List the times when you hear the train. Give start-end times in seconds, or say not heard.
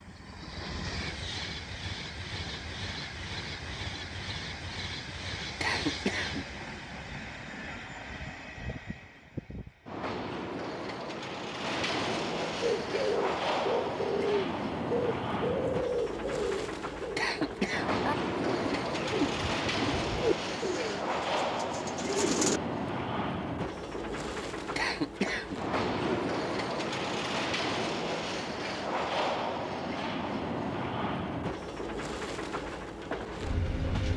0.0-34.1.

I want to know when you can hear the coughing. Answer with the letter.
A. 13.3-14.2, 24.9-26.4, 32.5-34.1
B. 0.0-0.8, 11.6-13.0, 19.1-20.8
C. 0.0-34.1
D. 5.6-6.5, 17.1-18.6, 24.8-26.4
D.